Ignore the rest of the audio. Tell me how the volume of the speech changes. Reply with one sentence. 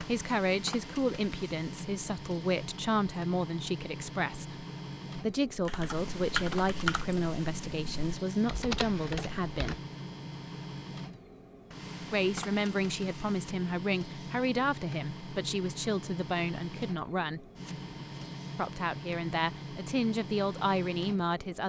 The loudness of the speech stays about the same.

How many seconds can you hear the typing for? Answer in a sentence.
The typing can be heard for 4 seconds in total.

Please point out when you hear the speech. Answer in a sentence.
You can hear the speech from 0.0 to 9.8 s, from 12.1 to 17.4 s and from 18.6 to 21.6 s.